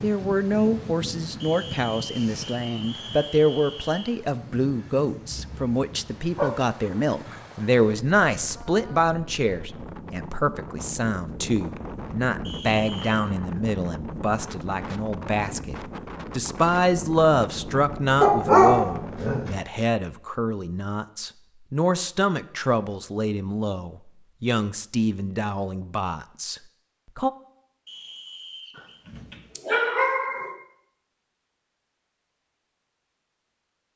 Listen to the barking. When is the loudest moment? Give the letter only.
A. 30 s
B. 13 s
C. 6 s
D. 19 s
D.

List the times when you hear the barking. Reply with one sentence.
You can hear the barking from 5.3 to 6.9 s, from 18.2 to 19.6 s and from 28.8 to 30.6 s.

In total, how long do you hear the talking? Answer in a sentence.
The talking can be heard for 27 seconds in total.